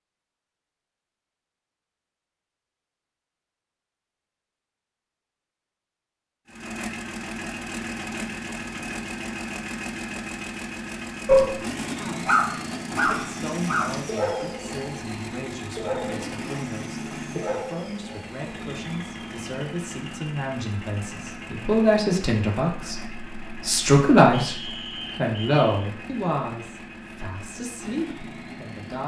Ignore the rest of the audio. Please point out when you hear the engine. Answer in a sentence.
The engine can be heard from 6.5 to 29.0 s.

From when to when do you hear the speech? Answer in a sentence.
You can hear the speech from 11.9 to 29.0 s.